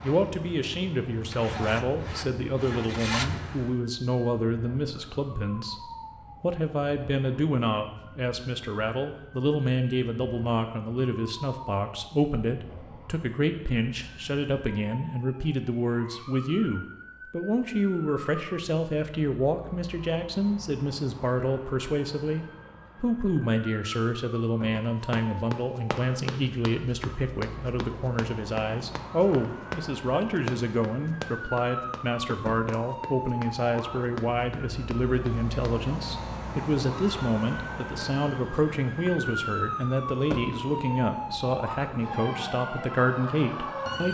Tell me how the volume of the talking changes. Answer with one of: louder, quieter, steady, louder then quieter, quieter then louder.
steady.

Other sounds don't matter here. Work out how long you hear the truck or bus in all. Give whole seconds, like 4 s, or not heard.
4 s.